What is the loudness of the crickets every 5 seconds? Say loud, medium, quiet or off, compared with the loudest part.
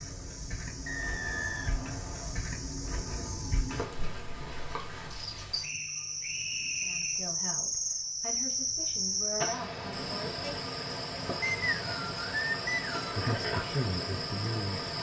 medium, loud, loud.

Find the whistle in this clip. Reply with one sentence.
You can hear the whistle from 0.8 to 2.5 s, from 5.6 to 7.2 s and from 11.4 to 13.2 s.